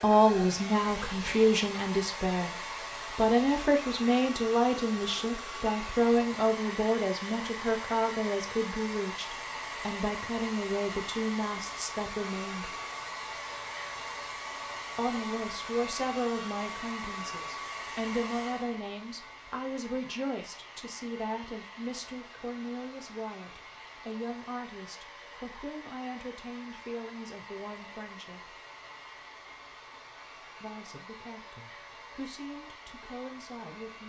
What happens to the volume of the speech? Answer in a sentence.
The volume of the speech goes down.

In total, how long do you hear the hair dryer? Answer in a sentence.
The hair dryer can be heard for 34 seconds in total.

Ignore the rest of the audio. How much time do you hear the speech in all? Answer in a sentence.
You can hear the speech for 30 seconds altogether.